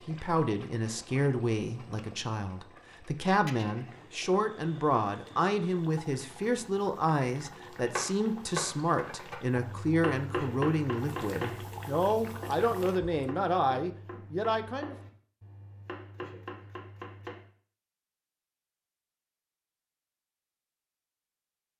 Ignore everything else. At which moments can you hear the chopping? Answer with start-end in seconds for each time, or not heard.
7.9-17.5.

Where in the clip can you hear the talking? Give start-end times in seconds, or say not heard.
0.0-14.9.